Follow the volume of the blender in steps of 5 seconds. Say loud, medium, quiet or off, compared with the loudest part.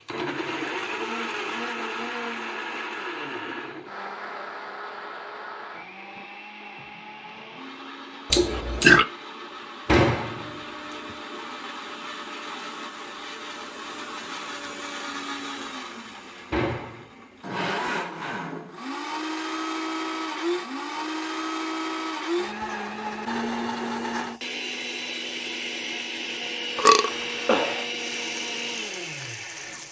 loud, medium, medium, loud, loud, loud.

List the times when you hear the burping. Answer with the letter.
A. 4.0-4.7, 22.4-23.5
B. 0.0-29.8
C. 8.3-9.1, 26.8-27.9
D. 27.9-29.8
C.